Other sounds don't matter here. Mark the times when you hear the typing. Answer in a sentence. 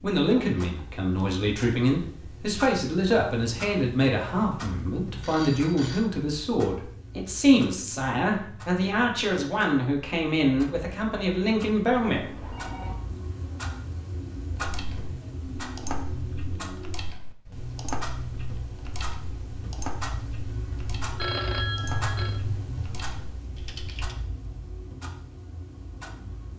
The typing can be heard from 14.5 to 24.1 s.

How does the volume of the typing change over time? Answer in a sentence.
The volume of the typing goes down.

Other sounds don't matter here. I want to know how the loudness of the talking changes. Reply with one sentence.
The loudness of the talking stays about the same.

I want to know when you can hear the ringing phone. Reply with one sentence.
The ringing phone can be heard from 5.2 to 6.0 s, from 12.2 to 12.9 s and from 21.1 to 22.4 s.